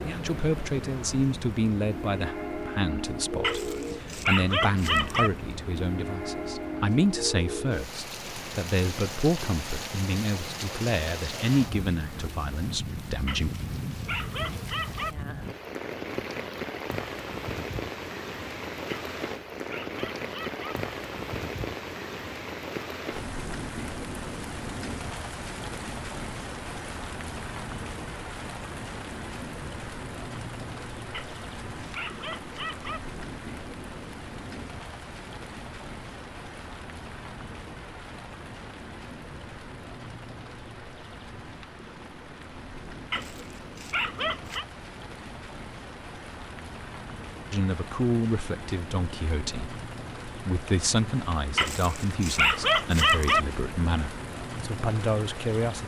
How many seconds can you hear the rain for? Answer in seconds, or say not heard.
56 s.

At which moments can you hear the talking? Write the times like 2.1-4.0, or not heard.
0.0-13.5, 47.5-55.8.